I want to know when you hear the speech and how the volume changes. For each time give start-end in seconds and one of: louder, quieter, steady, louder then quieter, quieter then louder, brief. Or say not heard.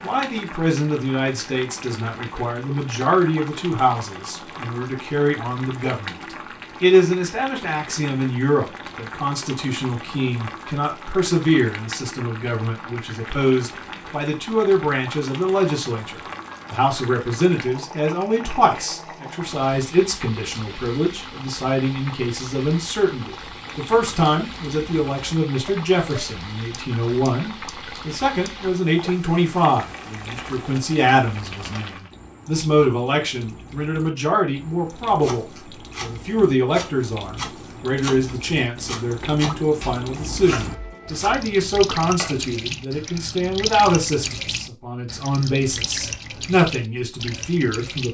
0.0-48.0 steady.